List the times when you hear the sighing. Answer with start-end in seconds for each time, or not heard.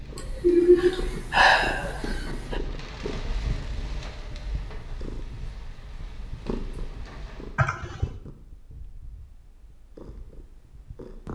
0.1-2.6, 7.5-8.1.